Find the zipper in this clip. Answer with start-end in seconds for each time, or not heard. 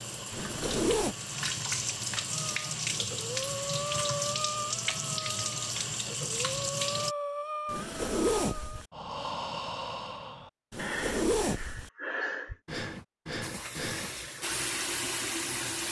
0.3-1.1, 7.7-8.8, 10.7-11.9.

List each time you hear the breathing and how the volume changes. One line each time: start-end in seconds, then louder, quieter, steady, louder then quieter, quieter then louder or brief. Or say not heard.
2.3-14.1 steady.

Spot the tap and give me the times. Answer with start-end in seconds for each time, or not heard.
0.0-7.2, 13.4-15.8.